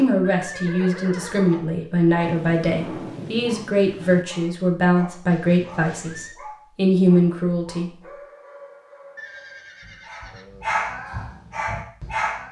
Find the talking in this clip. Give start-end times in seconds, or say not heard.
0.0-7.9.